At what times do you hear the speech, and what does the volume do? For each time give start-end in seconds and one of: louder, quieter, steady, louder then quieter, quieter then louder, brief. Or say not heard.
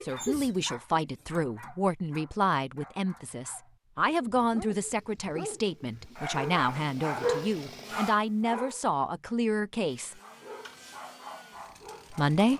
0.0-10.2 steady
12.1-12.5 brief.